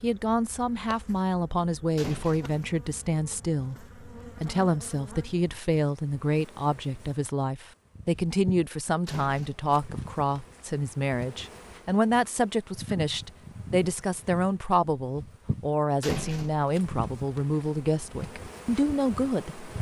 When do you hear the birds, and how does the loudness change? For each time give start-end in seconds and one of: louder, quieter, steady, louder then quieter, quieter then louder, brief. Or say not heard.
not heard.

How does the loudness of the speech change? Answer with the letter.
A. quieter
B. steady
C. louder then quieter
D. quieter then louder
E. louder
B.